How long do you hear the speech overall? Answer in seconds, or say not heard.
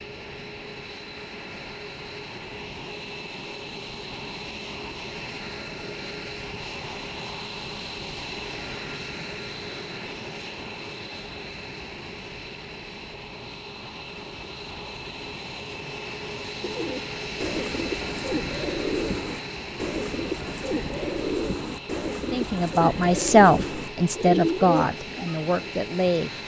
4 s.